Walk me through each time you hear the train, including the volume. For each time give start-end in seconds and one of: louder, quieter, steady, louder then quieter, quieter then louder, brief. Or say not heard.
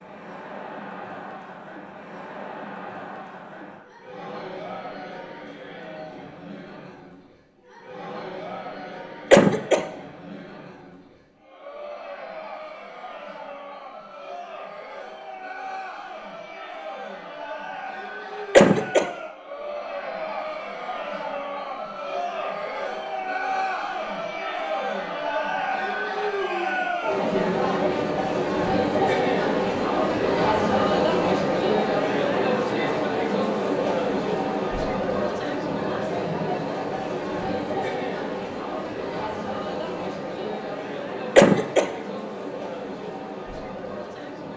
not heard.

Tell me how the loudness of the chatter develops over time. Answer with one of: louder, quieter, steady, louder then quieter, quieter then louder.
louder then quieter.